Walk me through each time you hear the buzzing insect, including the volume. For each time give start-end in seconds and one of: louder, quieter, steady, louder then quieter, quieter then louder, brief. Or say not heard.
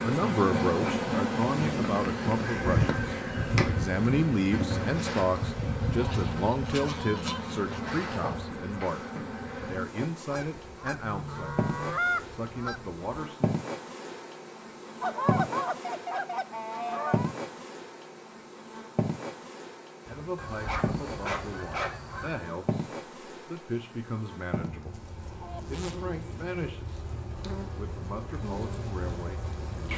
0.0-29.9 quieter.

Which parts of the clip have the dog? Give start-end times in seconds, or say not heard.
20.1-21.9.